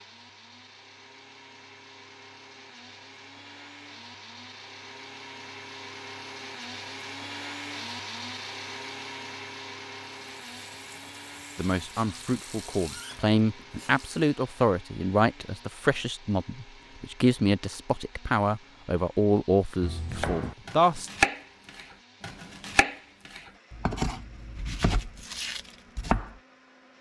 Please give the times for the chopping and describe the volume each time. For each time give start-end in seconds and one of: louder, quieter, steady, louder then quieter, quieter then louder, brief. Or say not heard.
19.8-26.4 quieter then louder.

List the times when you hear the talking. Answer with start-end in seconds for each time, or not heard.
11.6-21.1.